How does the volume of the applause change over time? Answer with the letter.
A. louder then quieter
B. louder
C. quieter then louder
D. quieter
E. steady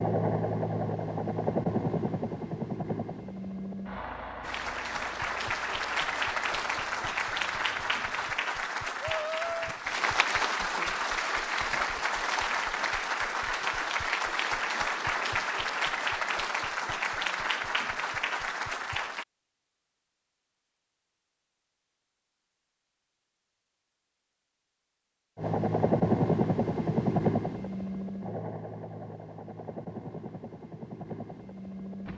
E.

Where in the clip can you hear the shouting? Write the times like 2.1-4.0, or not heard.
9.0-9.8.